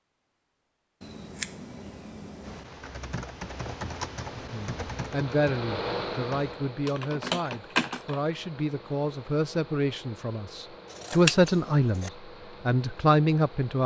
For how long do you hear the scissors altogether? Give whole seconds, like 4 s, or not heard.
3 s.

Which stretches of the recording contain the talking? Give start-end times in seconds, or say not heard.
4.3-13.8.